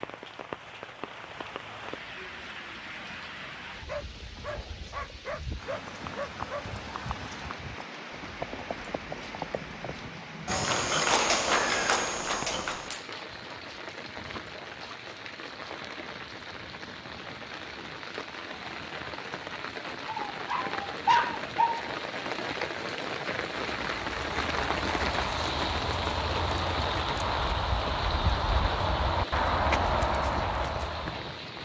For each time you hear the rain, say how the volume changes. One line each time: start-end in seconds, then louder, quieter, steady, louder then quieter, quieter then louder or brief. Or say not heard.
0.0-31.5 louder.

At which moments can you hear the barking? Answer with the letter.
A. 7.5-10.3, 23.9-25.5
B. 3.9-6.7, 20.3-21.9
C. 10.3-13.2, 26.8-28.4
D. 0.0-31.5
B.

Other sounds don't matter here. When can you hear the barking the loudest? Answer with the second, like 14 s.
21 s.